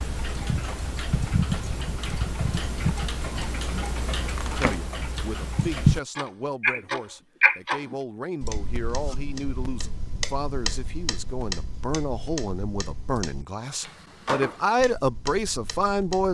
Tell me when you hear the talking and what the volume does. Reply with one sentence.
You can hear the talking from 4.5 to 16.2 s, getting louder.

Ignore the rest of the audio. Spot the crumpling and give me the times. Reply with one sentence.
The crumpling can be heard from 4.3 to 4.8 s.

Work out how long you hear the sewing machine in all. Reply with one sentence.
You can't hear the sewing machine here.